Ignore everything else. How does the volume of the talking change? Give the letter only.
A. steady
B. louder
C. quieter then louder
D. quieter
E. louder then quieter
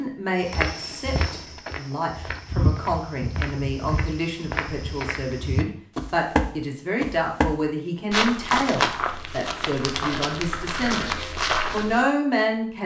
B.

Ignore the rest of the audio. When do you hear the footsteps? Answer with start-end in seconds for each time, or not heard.
0.5-12.1.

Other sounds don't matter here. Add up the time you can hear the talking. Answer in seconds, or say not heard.
13 s.